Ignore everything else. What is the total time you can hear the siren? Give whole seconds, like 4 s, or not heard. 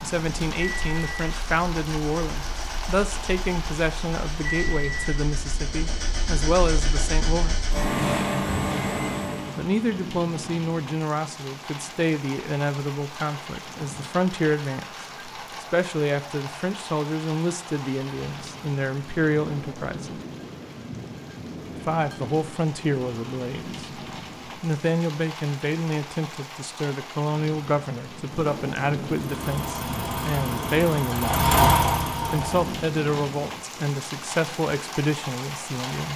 not heard.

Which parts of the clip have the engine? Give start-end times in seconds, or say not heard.
0.0-9.7, 29.1-32.8.